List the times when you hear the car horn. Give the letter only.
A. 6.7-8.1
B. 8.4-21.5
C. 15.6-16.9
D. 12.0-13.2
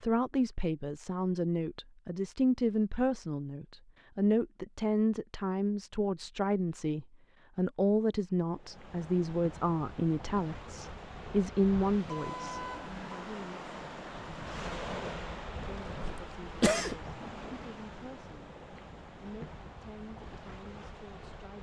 D.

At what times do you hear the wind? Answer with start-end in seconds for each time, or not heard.
8.4-21.5.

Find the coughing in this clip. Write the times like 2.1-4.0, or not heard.
15.6-16.9.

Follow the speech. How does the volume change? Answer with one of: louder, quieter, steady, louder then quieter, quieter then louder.
quieter.